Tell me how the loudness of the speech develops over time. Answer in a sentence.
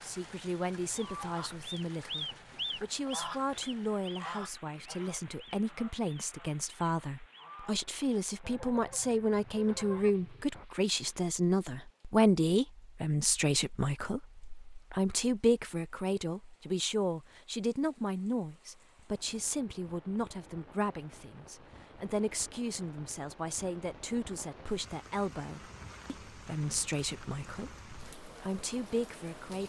The volume of the speech goes up, then down.